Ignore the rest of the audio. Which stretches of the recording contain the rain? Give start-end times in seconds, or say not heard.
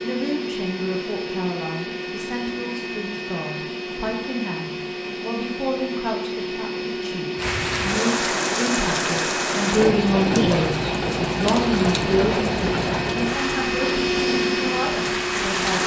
7.3-15.8.